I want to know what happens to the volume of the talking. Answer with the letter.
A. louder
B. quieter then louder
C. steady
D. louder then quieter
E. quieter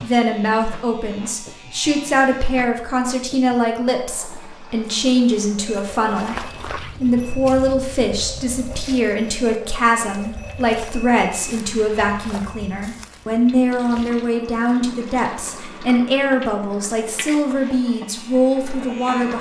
C.